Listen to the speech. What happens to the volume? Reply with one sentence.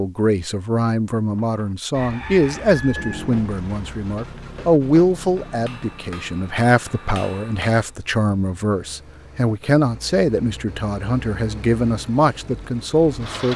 The loudness of the speech stays about the same.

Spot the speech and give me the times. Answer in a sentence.
You can hear the speech from 0.0 to 13.5 s.